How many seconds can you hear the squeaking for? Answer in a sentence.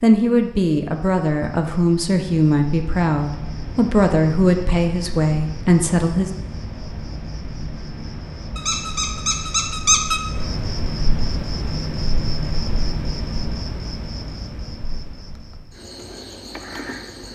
You can hear the squeaking for 2 seconds altogether.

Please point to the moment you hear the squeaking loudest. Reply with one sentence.
The loudest moment of the squeaking is at 10 seconds.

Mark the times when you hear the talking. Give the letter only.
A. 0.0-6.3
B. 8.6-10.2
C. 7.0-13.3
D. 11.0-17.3
A.